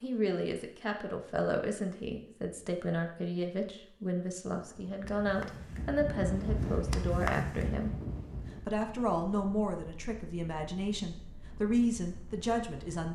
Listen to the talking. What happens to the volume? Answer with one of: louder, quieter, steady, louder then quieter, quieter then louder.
steady.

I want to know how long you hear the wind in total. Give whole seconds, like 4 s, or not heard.
8 s.